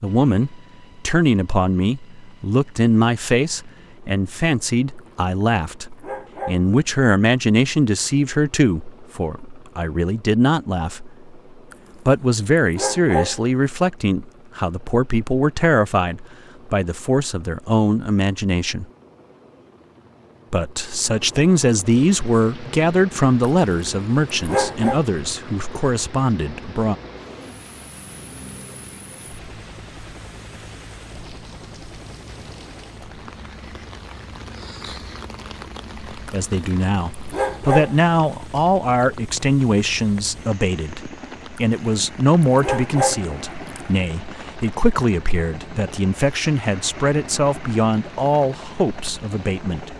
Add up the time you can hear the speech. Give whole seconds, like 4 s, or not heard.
38 s.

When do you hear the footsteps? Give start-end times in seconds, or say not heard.
not heard.